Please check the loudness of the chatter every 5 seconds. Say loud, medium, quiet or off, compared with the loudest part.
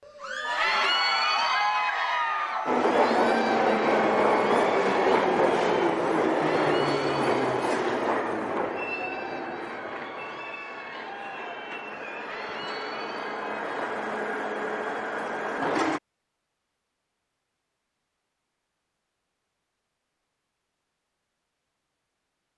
loud, medium, quiet, off, off.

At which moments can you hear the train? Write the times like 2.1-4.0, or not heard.
2.6-16.0.